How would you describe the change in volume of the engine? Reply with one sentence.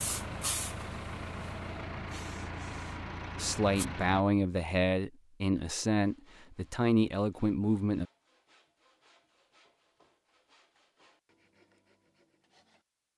The loudness of the engine stays about the same.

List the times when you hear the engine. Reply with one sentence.
You can hear the engine from 0.0 to 4.2 s.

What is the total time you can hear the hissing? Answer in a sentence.
The hissing can be heard for 4 seconds in total.